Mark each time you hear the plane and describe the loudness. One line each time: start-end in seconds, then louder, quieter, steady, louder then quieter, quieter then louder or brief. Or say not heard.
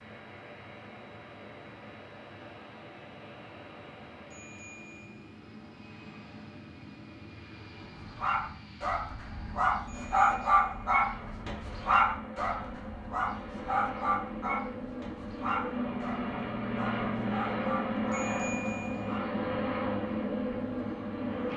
0.0-21.5 louder.